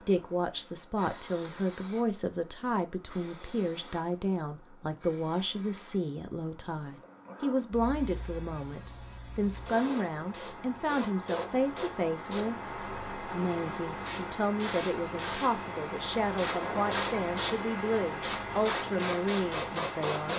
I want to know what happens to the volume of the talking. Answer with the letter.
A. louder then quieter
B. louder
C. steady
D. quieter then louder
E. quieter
C.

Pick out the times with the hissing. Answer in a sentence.
You can hear the hissing from 0.0 to 20.3 s.